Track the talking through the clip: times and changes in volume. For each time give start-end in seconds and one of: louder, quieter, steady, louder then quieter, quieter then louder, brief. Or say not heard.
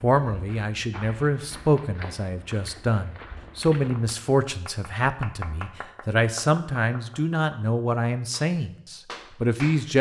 0.0-9.9 steady.